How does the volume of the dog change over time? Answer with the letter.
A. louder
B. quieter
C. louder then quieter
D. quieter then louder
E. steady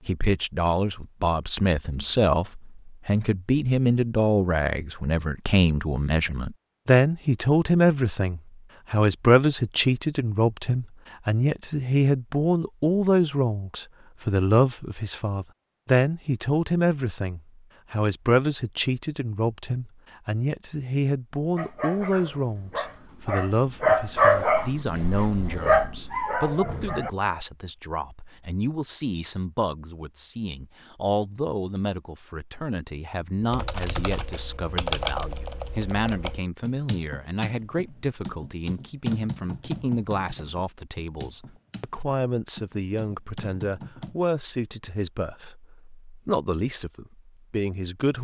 C.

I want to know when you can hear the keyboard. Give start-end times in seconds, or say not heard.
33.4-44.1.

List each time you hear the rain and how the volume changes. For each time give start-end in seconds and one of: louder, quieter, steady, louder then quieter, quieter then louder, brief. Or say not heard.
not heard.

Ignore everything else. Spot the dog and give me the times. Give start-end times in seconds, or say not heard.
21.6-27.1.